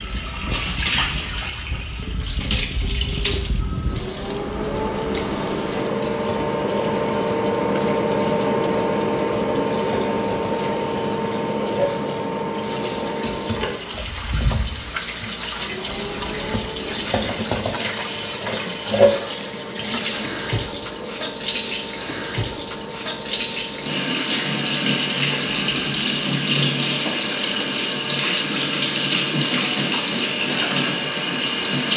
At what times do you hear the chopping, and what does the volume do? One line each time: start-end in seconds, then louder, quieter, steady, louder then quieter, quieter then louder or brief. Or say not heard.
not heard.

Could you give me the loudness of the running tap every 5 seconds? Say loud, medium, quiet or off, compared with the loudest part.
medium, quiet, medium, loud, loud, loud, loud.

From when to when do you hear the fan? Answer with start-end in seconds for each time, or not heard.
0.0-31.9.